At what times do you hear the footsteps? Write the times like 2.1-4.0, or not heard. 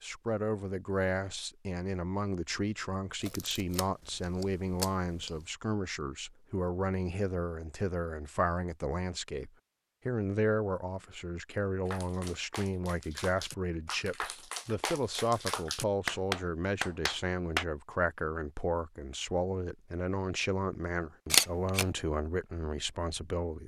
not heard.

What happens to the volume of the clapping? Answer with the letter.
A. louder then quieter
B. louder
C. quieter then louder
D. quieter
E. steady
B.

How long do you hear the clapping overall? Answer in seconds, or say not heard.
6 s.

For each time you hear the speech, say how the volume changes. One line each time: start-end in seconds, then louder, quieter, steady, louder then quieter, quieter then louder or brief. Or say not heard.
0.0-23.6 steady.